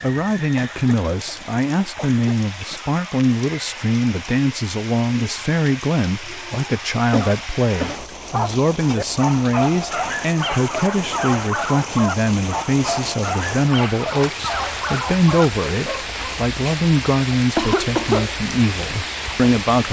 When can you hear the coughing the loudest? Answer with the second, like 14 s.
18 s.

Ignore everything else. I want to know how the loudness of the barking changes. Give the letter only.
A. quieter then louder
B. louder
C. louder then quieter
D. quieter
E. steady
E.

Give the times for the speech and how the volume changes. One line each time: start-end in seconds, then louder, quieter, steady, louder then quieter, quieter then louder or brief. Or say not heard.
0.0-19.8 steady.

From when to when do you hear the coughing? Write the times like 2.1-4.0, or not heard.
0.6-2.8, 7.1-8.1, 17.6-18.4.